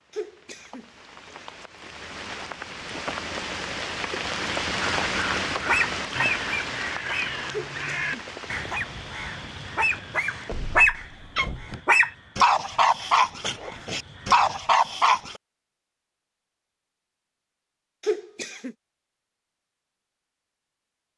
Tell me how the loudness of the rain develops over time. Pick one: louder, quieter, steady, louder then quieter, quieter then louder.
louder then quieter.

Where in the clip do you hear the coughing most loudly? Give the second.
18 s.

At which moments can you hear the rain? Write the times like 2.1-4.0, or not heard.
0.0-10.9.